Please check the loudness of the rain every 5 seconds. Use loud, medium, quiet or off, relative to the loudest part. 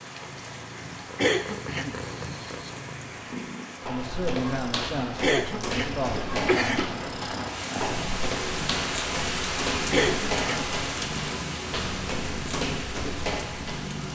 medium, loud, loud.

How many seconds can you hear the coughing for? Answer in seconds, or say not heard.
3 s.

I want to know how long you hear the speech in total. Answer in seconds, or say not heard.
3 s.